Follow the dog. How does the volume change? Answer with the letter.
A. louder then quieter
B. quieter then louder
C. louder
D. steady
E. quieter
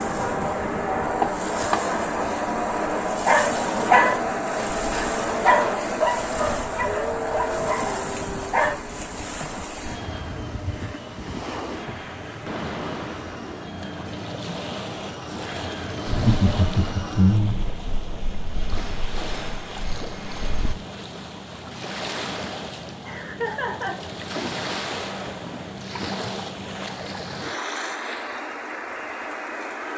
E.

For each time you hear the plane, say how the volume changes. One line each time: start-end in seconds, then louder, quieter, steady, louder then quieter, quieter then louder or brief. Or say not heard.
0.0-20.8 quieter.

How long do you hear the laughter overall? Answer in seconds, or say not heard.
3 s.